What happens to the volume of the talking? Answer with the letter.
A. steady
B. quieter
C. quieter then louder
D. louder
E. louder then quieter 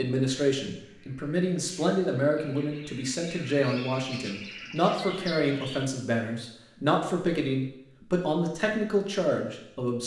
A.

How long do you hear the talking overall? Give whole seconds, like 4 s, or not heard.
10 s.